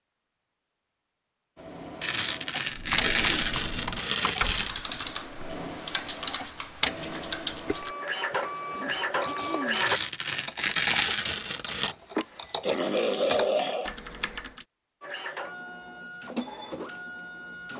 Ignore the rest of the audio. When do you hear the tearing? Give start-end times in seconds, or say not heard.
2.0-4.8, 9.7-11.9.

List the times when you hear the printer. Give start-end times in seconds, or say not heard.
1.6-10.0, 15.0-17.7.